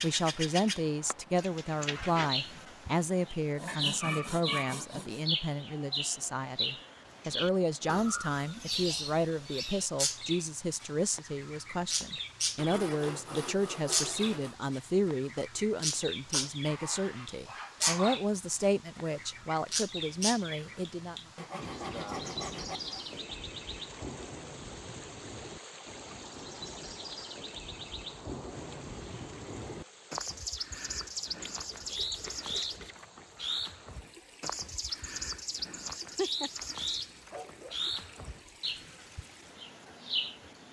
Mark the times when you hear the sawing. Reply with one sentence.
You can hear the sawing from 3.5 to 5.2 s, from 12.6 to 14.6 s, from 21.4 to 23.1 s and from 31.4 to 33.0 s.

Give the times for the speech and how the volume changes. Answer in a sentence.
The speech can be heard from 0.0 to 21.1 s, at a steady volume.